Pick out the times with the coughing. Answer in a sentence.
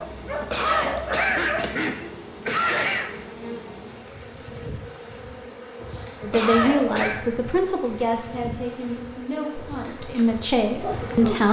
You can hear the coughing from 0.5 to 3.1 s and from 6.3 to 7.2 s.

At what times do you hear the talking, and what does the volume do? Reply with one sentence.
You can hear the talking from 6.2 to 11.4 s, getting quieter then louder.